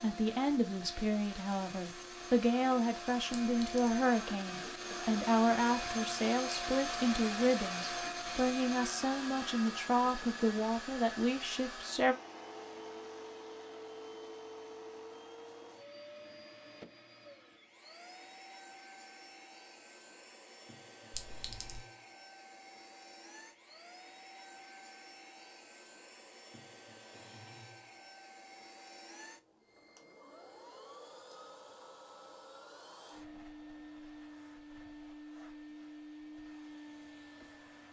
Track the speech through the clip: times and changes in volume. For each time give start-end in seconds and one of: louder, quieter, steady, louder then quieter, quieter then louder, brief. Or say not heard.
0.0-12.2 steady.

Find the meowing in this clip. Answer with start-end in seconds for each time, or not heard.
not heard.